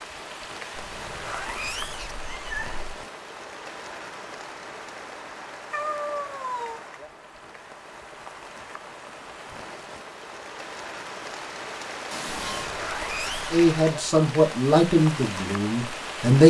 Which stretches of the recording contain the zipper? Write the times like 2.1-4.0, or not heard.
0.7-2.4, 12.5-13.7.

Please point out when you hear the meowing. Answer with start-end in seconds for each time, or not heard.
2.1-2.8, 5.7-6.8, 12.1-12.8.